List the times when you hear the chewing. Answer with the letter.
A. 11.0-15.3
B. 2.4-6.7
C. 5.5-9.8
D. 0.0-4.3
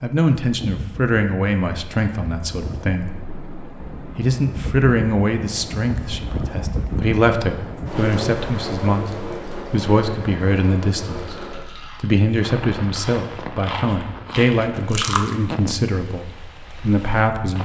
A.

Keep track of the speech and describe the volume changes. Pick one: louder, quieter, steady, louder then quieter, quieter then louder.
steady.